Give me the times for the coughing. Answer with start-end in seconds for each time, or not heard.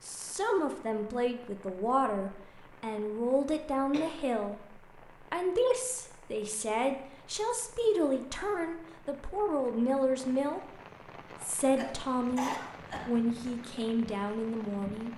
3.7-4.2, 11.4-13.1.